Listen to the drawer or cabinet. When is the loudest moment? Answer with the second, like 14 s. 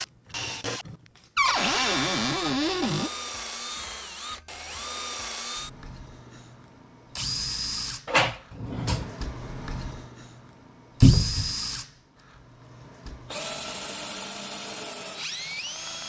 11 s.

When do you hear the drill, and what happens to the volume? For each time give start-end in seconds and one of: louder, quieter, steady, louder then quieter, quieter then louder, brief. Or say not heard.
0.0-16.0 steady.